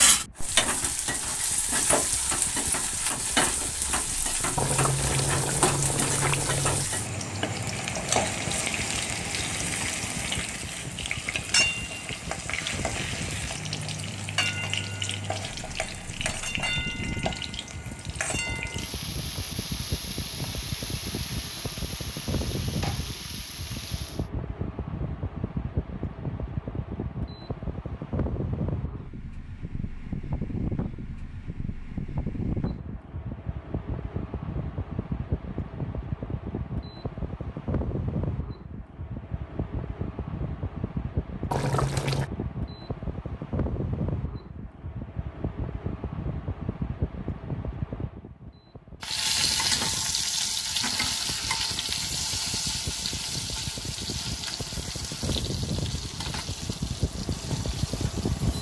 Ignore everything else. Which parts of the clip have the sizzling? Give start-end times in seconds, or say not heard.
0.0-24.3, 49.0-58.5.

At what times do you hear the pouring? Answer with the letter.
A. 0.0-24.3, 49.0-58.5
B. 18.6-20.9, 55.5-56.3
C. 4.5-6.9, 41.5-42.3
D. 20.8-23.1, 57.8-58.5
C.